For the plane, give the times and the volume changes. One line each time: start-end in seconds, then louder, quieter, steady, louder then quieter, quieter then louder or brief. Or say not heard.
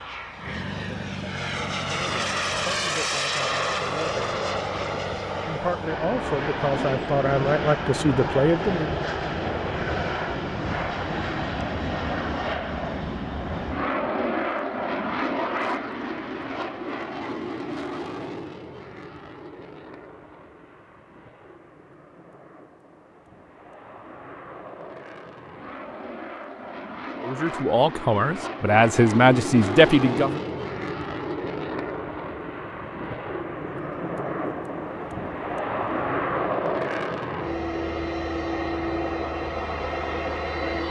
0.0-40.8 quieter then louder.